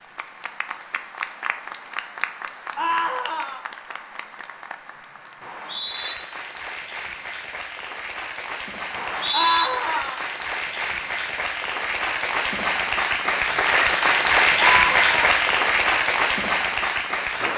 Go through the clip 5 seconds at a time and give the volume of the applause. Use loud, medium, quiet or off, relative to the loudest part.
quiet, quiet, loud, loud.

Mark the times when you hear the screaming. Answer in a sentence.
You can hear the screaming from 2.8 to 3.6 s, from 9.3 to 10.2 s and from 14.6 to 15.2 s.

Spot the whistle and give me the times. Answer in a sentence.
You can hear the whistle from 5.4 to 6.2 s and from 8.9 to 9.7 s.